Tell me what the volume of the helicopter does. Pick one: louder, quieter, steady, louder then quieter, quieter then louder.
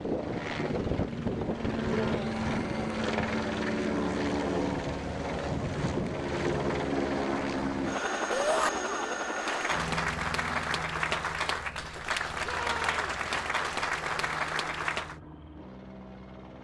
quieter.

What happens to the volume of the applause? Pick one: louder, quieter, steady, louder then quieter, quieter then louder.
steady.